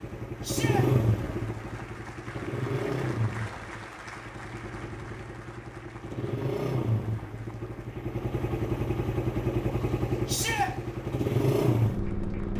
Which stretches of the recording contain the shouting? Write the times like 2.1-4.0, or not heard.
0.4-0.8, 10.2-10.7.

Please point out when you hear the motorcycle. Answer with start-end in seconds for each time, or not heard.
0.0-12.5.